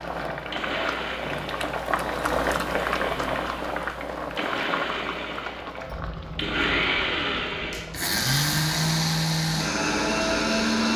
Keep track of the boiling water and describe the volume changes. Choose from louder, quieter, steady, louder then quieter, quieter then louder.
quieter.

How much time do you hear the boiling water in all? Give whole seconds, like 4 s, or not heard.
11 s.